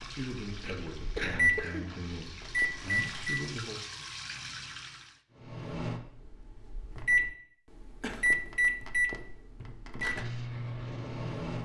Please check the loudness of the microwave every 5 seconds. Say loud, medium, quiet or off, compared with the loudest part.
loud, loud, medium.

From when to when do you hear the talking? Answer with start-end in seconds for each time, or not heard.
0.0-3.8.